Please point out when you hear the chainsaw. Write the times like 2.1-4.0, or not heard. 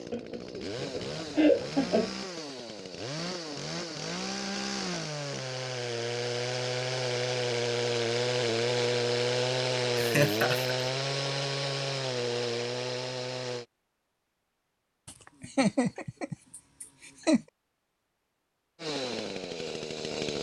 0.0-13.7, 18.8-20.3.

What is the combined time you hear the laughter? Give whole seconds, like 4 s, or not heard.
5 s.